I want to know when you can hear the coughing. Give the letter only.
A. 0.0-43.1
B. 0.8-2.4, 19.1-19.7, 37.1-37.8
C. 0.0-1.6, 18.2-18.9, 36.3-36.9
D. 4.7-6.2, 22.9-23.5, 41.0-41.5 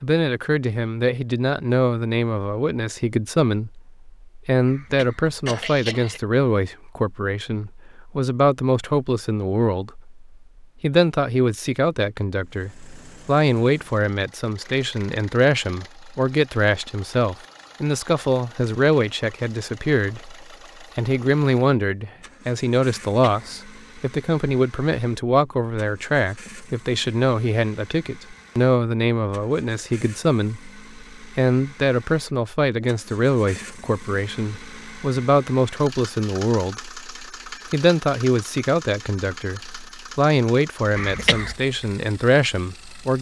D.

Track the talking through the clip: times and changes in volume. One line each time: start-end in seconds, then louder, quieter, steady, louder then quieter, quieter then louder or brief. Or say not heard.
0.0-43.1 steady.